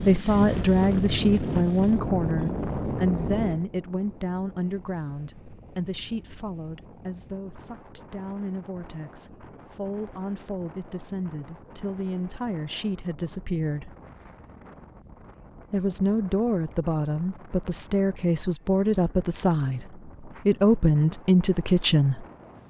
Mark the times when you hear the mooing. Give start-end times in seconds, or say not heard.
not heard.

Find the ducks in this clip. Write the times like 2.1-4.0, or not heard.
not heard.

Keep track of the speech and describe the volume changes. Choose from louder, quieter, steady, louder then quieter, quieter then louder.
quieter then louder.